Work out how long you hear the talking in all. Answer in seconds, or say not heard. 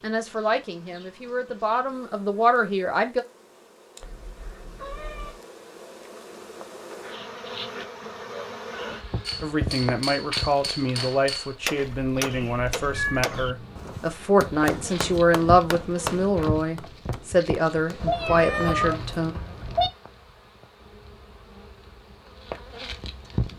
13 s.